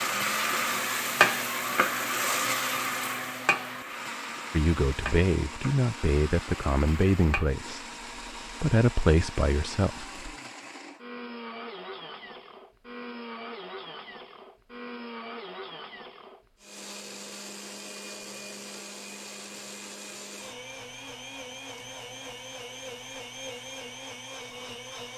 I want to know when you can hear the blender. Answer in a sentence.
You can hear the blender from 0.0 to 25.1 s.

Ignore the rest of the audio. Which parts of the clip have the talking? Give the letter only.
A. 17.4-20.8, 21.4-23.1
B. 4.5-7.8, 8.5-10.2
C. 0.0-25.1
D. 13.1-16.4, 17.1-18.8
B.